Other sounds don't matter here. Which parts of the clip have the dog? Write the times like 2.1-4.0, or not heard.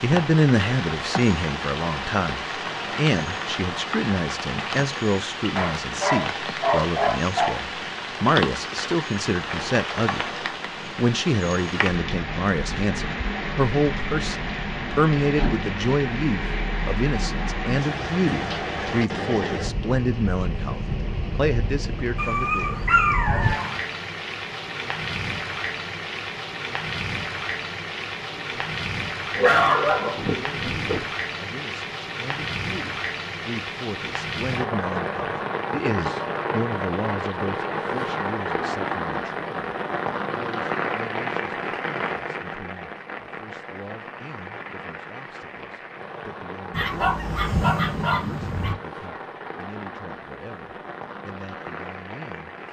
5.5-7.6, 22.1-23.8, 29.4-31.1, 46.7-48.8.